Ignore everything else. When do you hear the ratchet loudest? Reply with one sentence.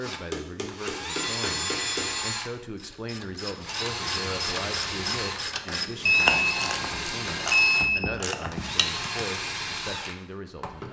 The volume of the ratchet peaks at 6 seconds.